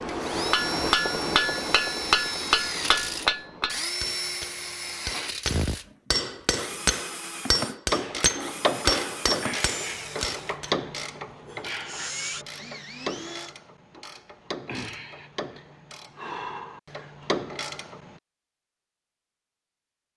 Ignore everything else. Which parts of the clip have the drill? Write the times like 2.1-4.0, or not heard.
0.0-13.6.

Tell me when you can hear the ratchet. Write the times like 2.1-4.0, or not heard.
7.9-18.1.